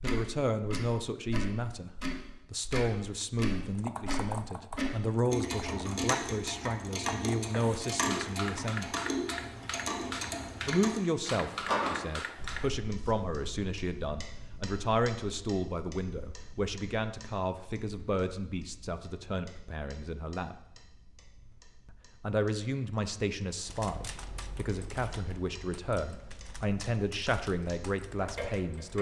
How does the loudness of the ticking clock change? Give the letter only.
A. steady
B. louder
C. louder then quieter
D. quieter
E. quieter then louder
E.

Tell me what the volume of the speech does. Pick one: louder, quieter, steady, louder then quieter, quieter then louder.
steady.